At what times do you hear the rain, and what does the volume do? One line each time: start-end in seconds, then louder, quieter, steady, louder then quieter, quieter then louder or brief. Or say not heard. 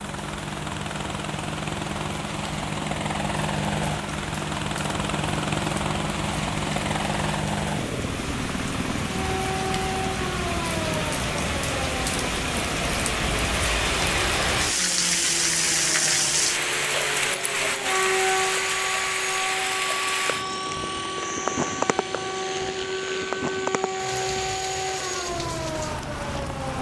0.0-26.7 louder then quieter.